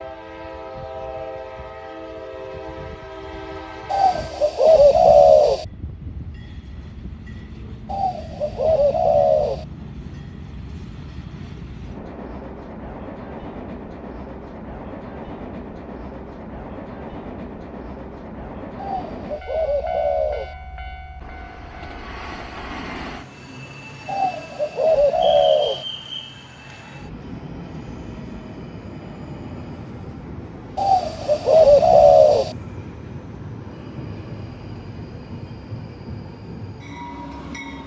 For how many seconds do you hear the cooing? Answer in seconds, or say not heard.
9 s.